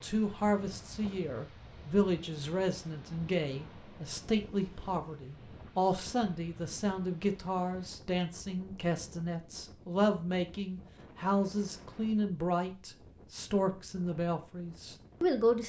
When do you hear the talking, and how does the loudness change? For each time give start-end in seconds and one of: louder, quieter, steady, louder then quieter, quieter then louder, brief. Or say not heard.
0.0-15.6 steady.